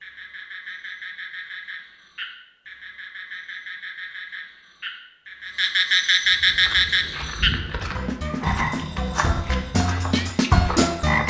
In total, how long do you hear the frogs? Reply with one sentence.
You can hear the frogs for 11 seconds altogether.